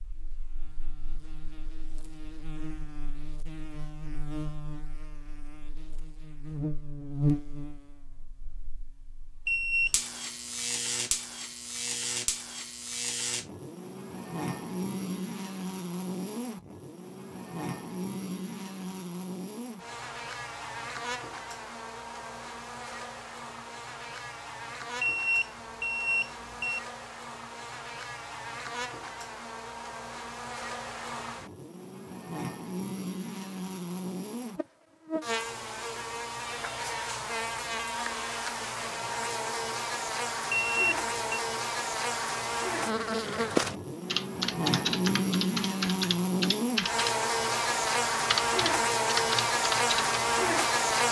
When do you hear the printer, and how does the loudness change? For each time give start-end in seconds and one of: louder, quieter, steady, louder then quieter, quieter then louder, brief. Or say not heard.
not heard.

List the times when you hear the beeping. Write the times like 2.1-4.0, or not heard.
9.4-9.9, 25.0-26.8, 40.5-41.4.